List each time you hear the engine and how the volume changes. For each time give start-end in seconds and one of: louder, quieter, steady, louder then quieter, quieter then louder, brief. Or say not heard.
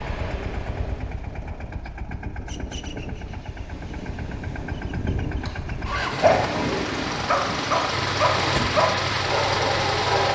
0.0-10.3 louder.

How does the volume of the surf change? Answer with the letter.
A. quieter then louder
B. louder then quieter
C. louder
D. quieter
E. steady
C.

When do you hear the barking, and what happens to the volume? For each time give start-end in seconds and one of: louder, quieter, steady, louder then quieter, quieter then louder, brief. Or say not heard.
5.9-10.3 steady.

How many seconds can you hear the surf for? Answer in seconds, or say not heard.
8 s.